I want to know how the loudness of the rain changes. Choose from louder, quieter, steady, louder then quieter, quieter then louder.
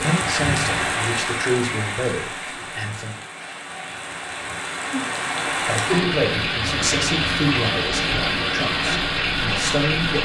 quieter then louder.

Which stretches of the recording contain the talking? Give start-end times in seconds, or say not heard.
0.0-3.2, 5.7-10.2.